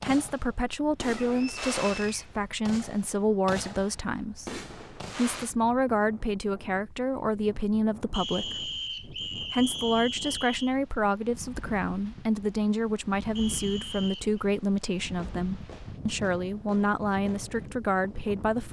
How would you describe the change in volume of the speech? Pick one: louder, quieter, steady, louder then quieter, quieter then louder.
steady.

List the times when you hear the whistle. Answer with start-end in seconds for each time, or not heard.
1.4-2.2, 8.1-10.8, 13.3-14.4.